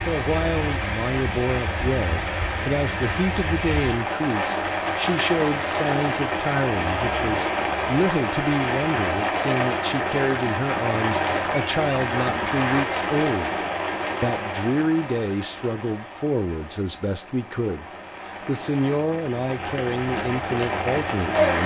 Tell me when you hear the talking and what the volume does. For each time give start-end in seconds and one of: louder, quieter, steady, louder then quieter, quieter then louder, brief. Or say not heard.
0.1-21.6 steady.